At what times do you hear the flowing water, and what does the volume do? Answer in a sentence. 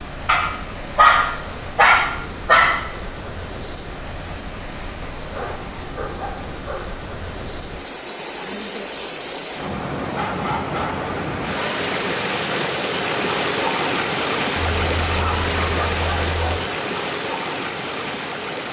You can hear the flowing water from 0.0 to 18.6 s, getting louder.